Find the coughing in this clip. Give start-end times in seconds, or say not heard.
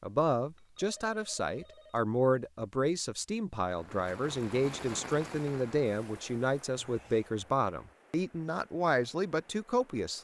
not heard.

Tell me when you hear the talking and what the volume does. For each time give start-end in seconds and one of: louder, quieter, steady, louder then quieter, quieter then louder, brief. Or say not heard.
0.0-10.1 steady.